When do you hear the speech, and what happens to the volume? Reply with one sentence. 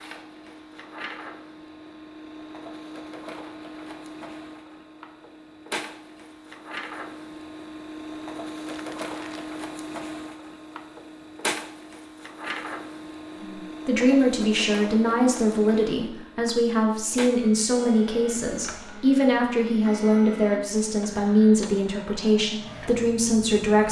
The speech can be heard from 13.4 to 23.8 s, at a steady volume.